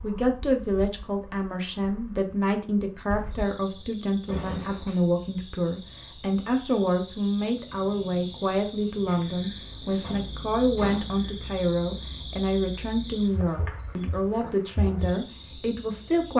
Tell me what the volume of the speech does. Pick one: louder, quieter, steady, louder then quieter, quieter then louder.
steady.